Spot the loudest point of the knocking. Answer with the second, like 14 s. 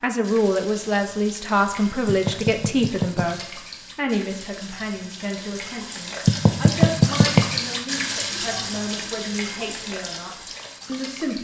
7 s.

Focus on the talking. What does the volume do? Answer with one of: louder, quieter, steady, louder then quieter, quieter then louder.
quieter.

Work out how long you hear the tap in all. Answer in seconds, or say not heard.
11 s.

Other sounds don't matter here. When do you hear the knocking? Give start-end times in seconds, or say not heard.
2.0-3.3, 6.2-7.5.